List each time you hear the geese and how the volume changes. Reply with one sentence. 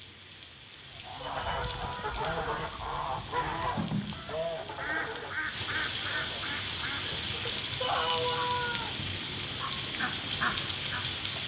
You can hear the geese from 1.1 to 11.1 s, getting quieter then louder.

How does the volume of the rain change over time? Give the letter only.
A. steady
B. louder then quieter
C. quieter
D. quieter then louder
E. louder
E.